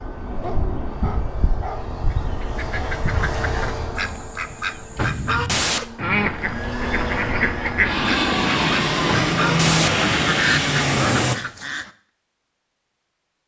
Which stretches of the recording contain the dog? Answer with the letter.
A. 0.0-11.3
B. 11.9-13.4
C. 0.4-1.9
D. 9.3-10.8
C.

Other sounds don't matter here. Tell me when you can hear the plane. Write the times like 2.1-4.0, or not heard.
0.0-11.3.